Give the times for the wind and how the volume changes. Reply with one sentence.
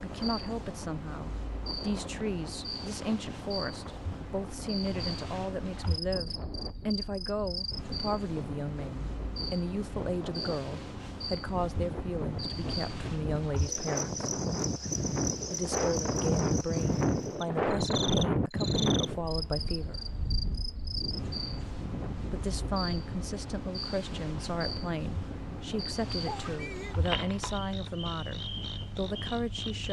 You can hear the wind from 0.0 to 29.8 s, getting louder then quieter.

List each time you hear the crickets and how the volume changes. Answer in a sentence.
You can hear the crickets from 0.0 to 29.8 s, at a steady volume.